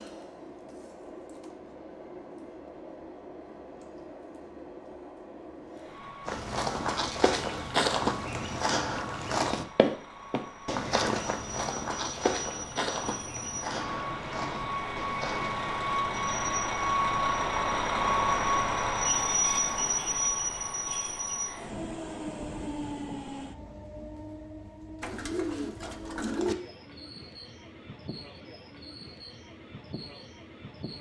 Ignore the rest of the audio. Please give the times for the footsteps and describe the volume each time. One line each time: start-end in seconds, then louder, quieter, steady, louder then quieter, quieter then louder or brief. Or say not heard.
6.2-15.6 quieter.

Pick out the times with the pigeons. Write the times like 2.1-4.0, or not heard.
25.0-26.6.